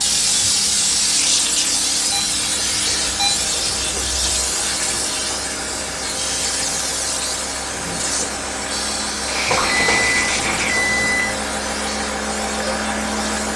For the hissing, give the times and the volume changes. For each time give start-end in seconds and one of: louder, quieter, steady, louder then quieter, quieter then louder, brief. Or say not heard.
0.0-13.5 quieter.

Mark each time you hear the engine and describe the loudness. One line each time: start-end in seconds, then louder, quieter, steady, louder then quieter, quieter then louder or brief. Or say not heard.
0.0-13.5 louder.